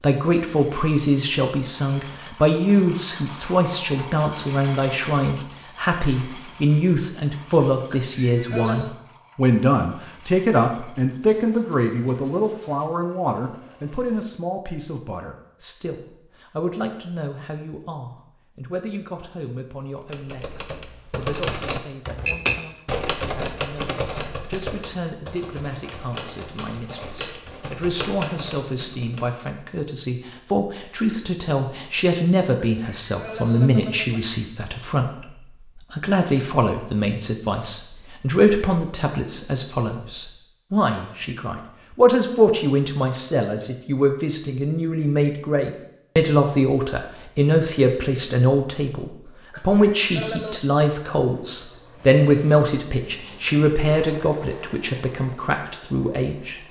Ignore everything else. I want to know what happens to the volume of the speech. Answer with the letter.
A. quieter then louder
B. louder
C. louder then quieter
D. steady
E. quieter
A.